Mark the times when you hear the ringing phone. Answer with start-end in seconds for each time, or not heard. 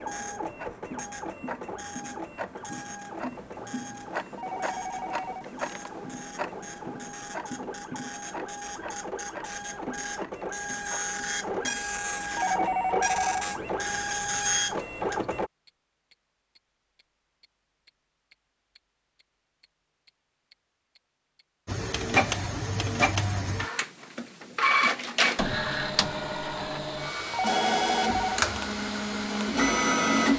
4.3-5.9, 12.3-13.5, 27.3-28.4.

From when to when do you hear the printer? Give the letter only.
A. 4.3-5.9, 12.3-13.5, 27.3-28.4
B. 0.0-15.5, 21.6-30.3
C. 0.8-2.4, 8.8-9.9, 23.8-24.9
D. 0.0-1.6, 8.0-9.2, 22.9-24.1
B.